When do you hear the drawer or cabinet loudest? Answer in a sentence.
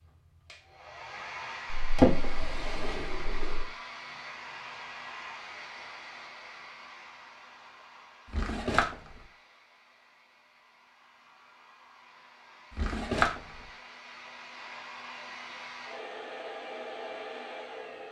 The loudest moment of the drawer or cabinet is at 2 seconds.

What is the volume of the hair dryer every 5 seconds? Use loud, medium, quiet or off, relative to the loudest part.
loud, medium, medium, loud.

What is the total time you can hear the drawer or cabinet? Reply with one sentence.
The drawer or cabinet can be heard for 3 seconds in total.